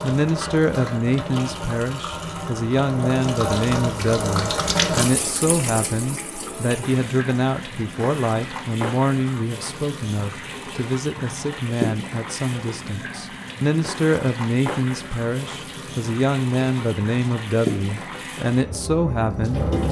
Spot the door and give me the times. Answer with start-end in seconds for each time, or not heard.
not heard.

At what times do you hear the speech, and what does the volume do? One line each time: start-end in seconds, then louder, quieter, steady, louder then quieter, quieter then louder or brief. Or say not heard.
0.0-19.6 steady.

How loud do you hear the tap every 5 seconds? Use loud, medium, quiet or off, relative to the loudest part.
loud, medium, medium, loud.